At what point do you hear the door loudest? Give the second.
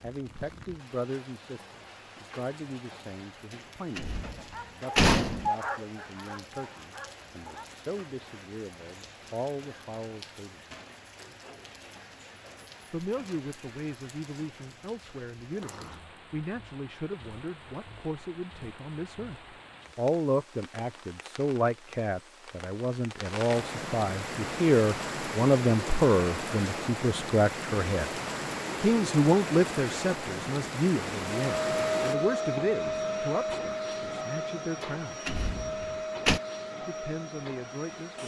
5 s.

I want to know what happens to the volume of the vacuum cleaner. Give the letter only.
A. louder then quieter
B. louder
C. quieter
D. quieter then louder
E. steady
C.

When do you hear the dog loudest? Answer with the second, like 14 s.
6 s.